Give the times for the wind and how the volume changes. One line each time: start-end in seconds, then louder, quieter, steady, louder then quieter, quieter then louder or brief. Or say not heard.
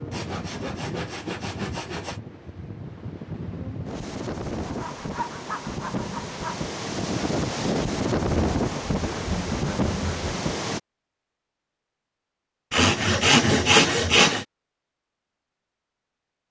0.0-10.8 louder.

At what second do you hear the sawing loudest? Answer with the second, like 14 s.
14 s.